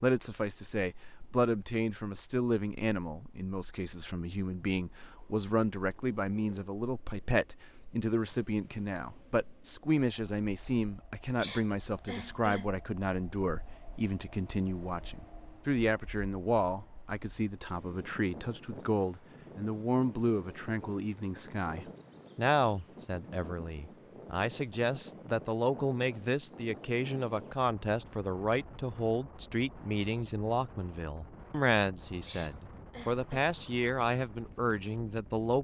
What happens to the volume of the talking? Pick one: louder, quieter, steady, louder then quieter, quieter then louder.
steady.